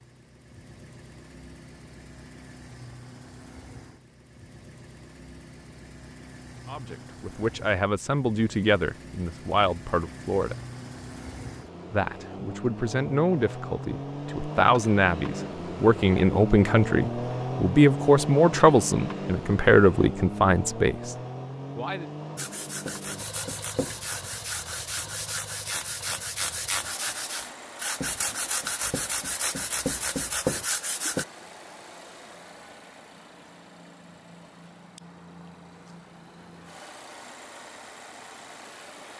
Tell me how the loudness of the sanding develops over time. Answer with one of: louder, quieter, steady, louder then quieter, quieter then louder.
louder.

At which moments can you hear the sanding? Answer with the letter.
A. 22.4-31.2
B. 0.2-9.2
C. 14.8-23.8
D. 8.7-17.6
A.